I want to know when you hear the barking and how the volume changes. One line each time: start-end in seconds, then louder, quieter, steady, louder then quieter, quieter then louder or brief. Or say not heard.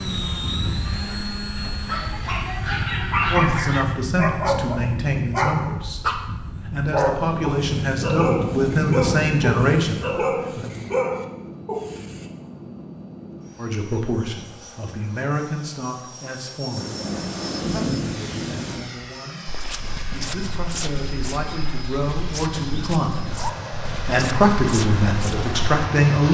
1.6-12.3 steady.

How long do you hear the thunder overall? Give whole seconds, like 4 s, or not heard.
4 s.